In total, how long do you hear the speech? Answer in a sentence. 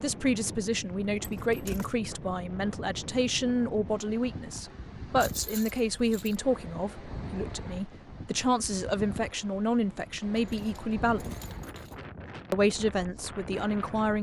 The speech can be heard for 13 seconds in total.